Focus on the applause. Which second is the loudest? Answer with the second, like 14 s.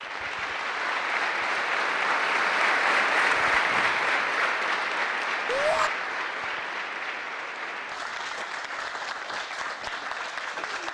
3 s.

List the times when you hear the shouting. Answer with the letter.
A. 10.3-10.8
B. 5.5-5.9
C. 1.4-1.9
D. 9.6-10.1
B.